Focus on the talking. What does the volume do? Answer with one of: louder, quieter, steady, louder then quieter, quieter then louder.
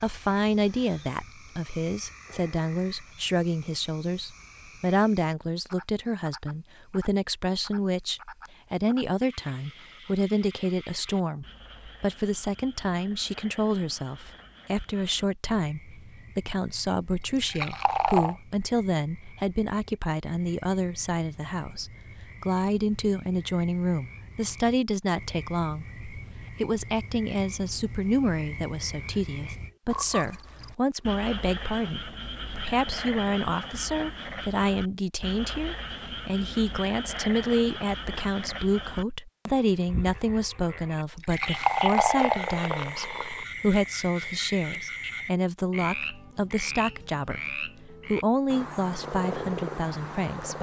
steady.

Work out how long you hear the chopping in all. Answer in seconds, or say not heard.
not heard.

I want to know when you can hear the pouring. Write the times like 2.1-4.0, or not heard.
17.1-18.4, 40.9-43.5.